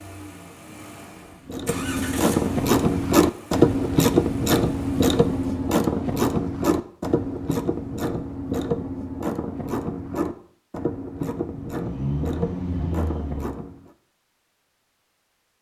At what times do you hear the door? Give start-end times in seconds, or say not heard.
not heard.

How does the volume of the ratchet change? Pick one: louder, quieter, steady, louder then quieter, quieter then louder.
quieter.